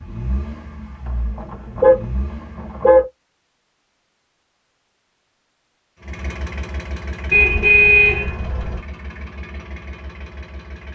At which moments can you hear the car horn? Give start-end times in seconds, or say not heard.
1.1-3.0, 7.3-8.8.